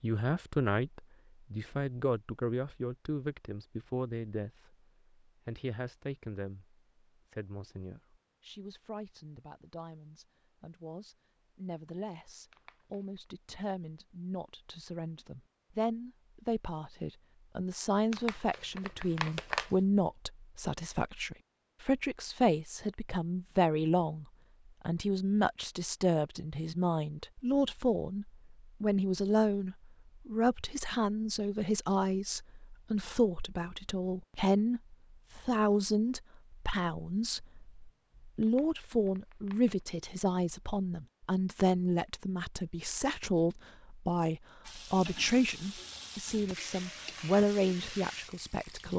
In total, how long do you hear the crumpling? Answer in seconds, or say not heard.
4 s.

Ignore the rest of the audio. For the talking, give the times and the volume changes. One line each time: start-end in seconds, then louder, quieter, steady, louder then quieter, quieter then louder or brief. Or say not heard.
0.0-24.2 quieter then louder
24.9-48.9 steady.